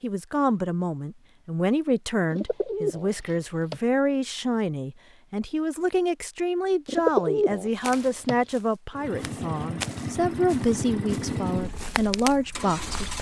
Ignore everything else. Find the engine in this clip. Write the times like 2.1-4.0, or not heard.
8.9-13.1.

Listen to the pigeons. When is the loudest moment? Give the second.
7 s.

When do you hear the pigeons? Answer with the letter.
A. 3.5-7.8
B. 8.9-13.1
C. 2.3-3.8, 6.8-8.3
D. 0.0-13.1
C.